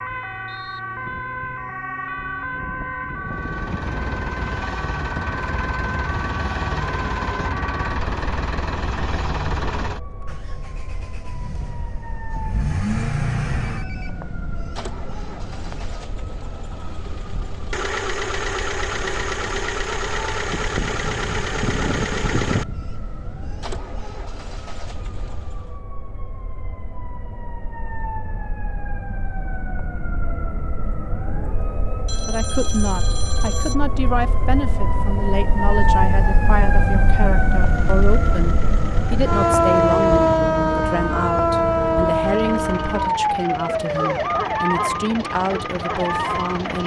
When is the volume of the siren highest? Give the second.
40 s.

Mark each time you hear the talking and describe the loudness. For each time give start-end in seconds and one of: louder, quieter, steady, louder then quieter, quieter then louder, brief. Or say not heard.
32.2-46.8 steady.